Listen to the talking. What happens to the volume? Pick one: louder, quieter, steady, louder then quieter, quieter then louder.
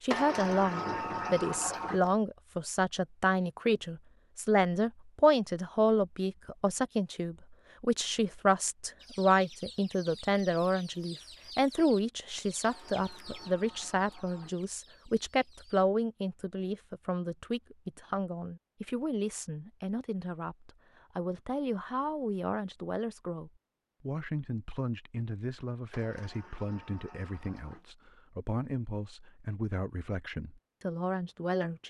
quieter.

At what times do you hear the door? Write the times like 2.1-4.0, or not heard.
0.1-2.0, 12.6-14.6, 25.9-27.9.